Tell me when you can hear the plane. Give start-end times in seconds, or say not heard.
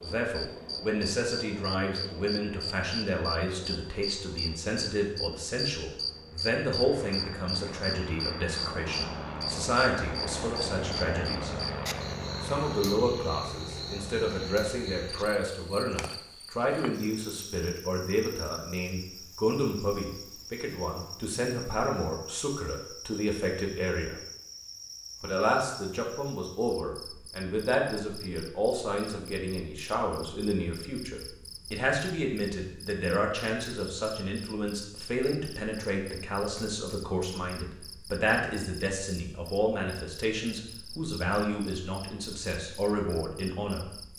0.0-15.3.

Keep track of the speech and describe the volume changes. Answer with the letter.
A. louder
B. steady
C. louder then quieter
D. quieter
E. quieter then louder
B.